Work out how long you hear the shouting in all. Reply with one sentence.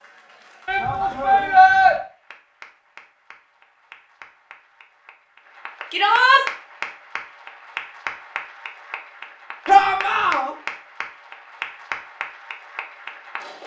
The shouting can be heard for 3 seconds in total.